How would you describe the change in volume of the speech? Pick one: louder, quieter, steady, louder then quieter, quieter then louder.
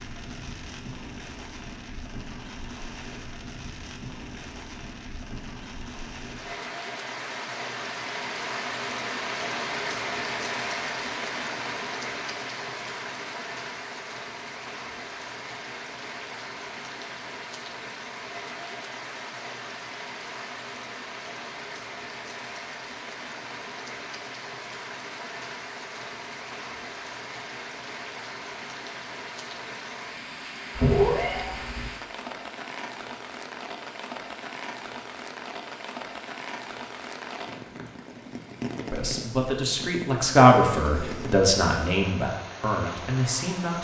louder then quieter.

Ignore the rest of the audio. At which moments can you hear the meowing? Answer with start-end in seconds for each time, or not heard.
30.8-31.9.